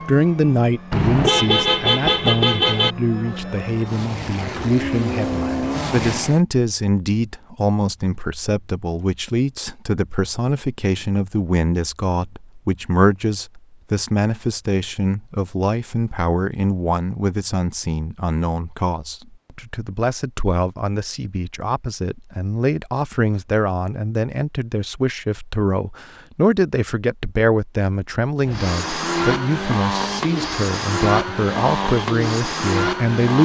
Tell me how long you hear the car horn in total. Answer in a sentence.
You can hear the car horn for 2 seconds altogether.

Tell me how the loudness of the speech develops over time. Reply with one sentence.
The volume of the speech stays about the same.